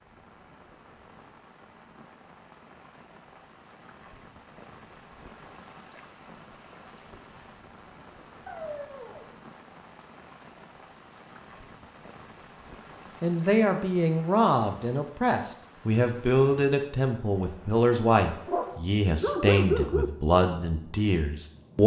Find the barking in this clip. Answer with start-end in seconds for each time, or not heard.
8.4-9.3, 18.4-20.1.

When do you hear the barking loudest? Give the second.
20 s.